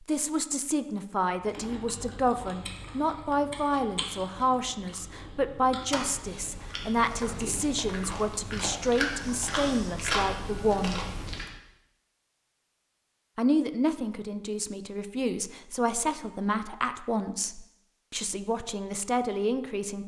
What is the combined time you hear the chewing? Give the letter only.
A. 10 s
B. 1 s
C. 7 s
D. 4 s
A.